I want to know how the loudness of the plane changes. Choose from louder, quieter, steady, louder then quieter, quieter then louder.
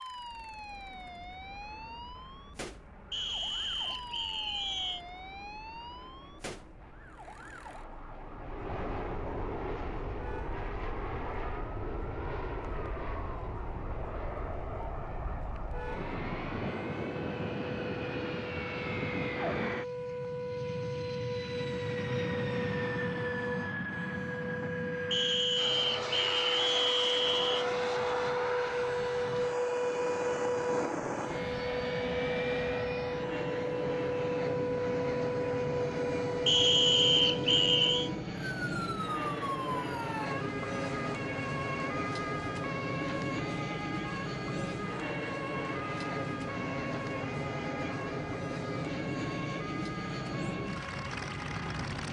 louder.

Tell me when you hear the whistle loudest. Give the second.
37 s.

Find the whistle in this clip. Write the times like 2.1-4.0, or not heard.
3.1-5.0, 25.1-27.6, 36.5-38.1.